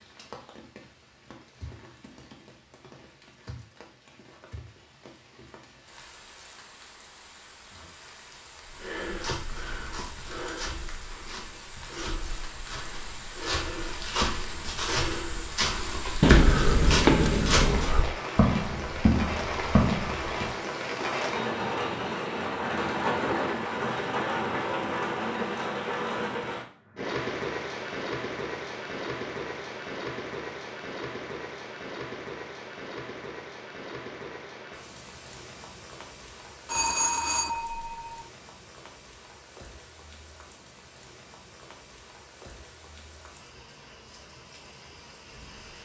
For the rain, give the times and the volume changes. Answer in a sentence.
The rain can be heard from 0.0 to 45.8 s, getting louder then quieter.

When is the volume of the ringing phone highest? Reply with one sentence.
The volume of the ringing phone peaks at 17 seconds.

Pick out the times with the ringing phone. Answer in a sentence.
The ringing phone can be heard from 16.2 to 18.0 s and from 36.6 to 38.2 s.